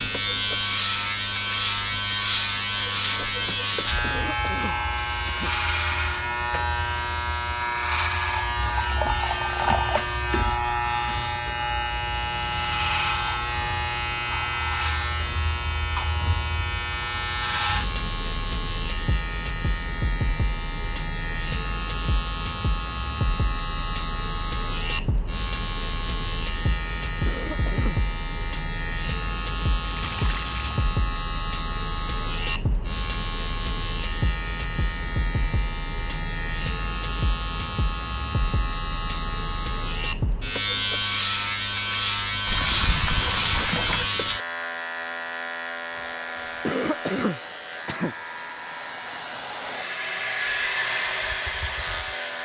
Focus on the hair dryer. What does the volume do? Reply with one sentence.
The loudness of the hair dryer goes up.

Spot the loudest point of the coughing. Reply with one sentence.
The volume of the coughing peaks at 47 seconds.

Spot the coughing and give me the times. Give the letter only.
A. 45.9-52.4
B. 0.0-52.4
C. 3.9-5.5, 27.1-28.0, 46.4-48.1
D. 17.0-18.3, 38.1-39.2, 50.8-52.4
C.